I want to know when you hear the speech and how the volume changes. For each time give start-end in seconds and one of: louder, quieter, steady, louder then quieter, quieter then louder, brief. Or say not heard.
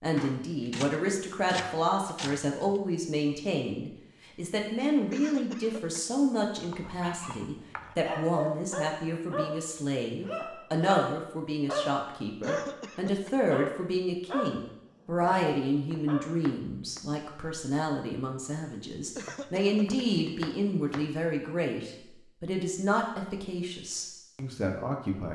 0.0-25.3 steady.